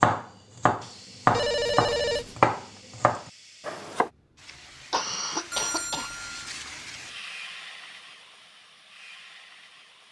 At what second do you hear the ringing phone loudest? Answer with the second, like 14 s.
2 s.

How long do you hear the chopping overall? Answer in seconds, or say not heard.
4 s.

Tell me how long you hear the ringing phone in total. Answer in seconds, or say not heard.
2 s.